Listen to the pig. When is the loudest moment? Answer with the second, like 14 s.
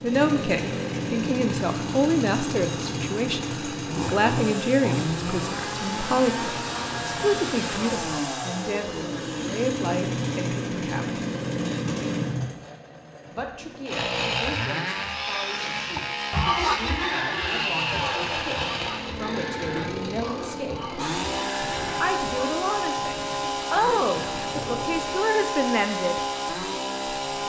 17 s.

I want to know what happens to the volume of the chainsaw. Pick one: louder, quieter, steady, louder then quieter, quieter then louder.
steady.